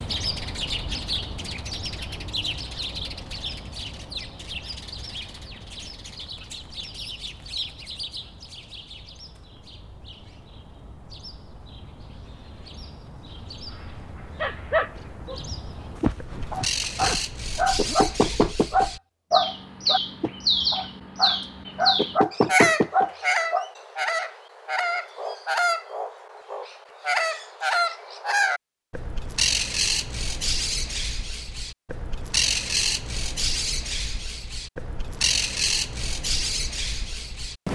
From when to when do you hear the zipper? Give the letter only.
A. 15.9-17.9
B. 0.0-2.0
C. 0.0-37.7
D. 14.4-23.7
A.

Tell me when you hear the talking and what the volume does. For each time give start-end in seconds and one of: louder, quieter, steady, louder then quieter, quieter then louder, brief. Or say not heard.
not heard.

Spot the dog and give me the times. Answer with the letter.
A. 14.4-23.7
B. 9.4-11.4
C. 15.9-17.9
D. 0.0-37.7
A.